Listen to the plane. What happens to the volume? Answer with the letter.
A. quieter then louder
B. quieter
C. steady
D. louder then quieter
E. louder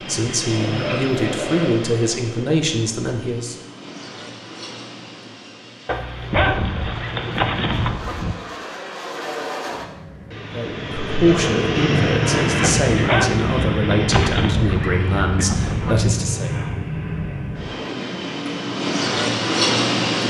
A.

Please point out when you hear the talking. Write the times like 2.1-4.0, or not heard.
0.0-3.6, 10.5-16.6.